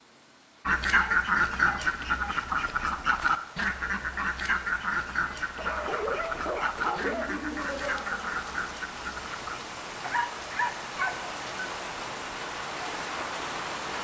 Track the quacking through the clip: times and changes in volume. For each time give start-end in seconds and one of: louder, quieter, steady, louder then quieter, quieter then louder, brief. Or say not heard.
0.7-9.6 quieter.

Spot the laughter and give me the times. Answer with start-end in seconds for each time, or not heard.
7.0-8.6.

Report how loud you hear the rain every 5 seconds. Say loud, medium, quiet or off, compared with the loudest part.
quiet, medium, loud.